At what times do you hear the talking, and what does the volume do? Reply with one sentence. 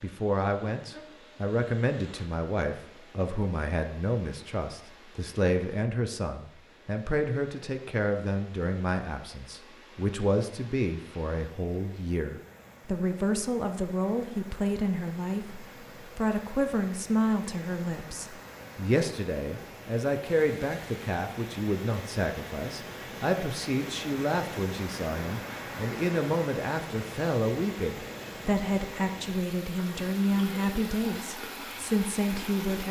You can hear the talking from 0.0 to 32.8 s, at a steady volume.